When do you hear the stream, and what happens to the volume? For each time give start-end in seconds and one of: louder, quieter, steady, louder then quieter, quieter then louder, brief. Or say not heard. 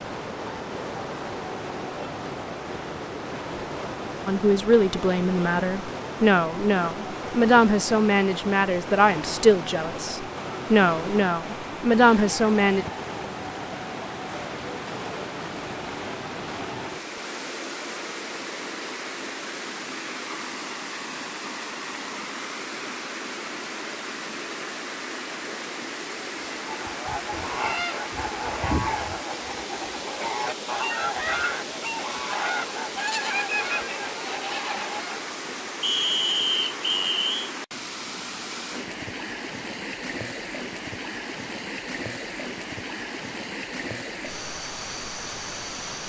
0.0-46.0 steady.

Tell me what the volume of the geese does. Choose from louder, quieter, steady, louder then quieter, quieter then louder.
steady.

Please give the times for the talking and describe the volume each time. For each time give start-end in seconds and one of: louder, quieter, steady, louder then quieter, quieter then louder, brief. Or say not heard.
4.2-12.8 steady.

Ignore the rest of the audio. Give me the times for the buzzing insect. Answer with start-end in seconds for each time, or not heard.
not heard.